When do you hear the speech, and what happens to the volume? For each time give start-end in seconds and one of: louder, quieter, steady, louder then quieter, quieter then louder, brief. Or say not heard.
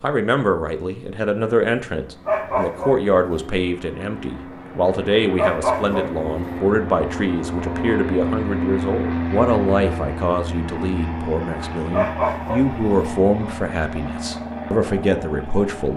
0.0-15.9 steady.